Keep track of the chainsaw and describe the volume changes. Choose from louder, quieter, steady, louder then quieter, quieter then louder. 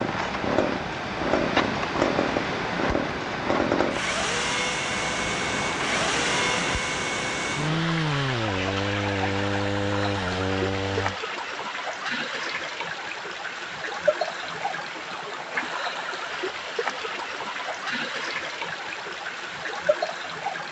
steady.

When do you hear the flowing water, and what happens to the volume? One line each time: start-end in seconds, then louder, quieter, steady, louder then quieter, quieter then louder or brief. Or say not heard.
0.0-20.6 steady.